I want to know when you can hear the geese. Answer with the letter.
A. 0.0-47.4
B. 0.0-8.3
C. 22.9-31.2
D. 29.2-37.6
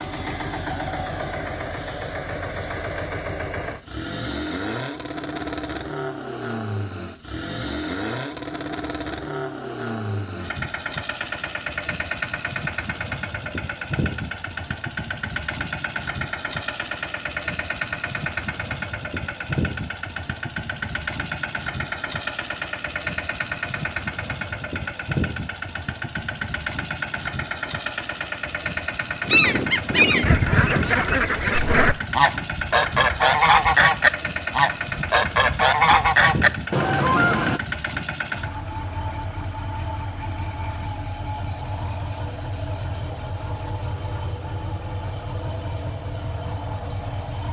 D.